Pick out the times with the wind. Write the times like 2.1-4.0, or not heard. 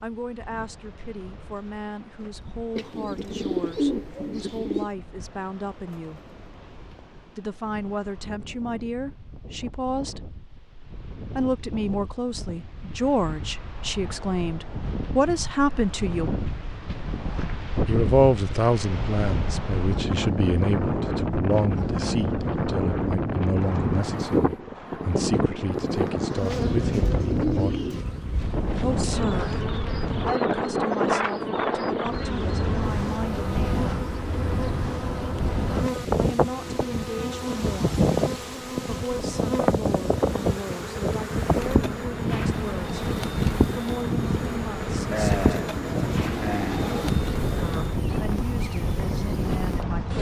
0.0-50.1.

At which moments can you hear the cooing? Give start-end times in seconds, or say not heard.
2.8-4.9, 26.3-28.1, 45.1-47.1.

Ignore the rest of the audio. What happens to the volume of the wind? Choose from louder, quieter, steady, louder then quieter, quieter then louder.
louder.